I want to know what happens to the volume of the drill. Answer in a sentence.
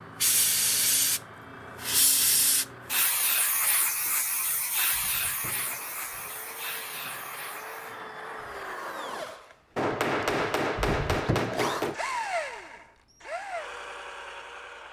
The loudness of the drill goes up.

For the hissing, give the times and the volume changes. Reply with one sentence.
The hissing can be heard from 0.0 to 8.0 s, getting quieter.